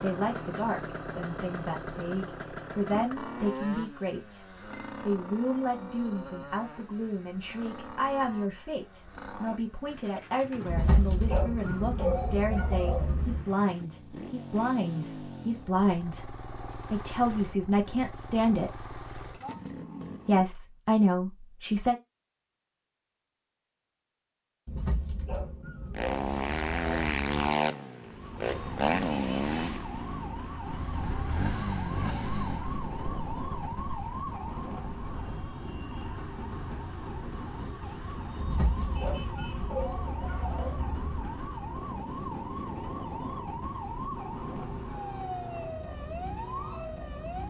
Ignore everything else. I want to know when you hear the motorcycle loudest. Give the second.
27 s.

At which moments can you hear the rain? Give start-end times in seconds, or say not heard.
not heard.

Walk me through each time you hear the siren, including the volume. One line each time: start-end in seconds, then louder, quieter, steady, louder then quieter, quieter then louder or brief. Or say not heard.
28.0-47.4 steady.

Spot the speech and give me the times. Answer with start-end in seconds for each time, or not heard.
0.0-18.7, 20.2-21.9.